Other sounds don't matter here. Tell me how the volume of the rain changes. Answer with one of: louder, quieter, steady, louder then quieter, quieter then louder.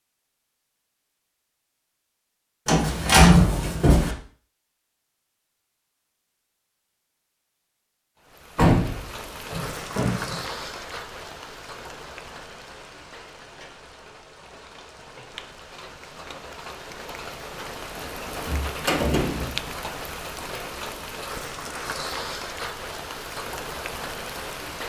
quieter then louder.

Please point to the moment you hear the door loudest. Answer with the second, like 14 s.
3 s.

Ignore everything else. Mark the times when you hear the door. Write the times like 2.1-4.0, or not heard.
2.6-4.2, 8.6-10.3, 18.4-19.6.